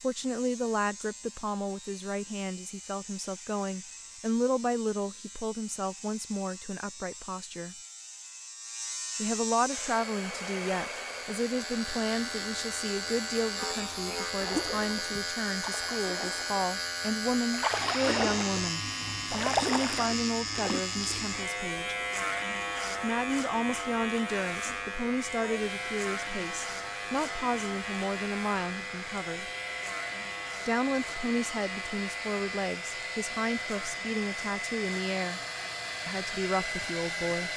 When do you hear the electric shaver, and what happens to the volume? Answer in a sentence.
The electric shaver can be heard from 0.0 to 37.5 s, getting louder then quieter.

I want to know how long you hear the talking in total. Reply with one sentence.
You can hear the talking for 33 seconds altogether.